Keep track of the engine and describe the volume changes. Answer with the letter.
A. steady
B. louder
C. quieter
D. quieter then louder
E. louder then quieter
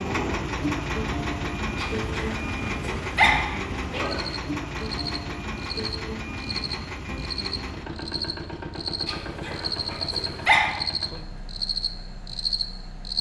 C.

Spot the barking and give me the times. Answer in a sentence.
The barking can be heard from 1.8 to 4.3 s and from 9.1 to 10.8 s.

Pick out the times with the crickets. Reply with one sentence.
The crickets can be heard from 4.2 to 13.1 s.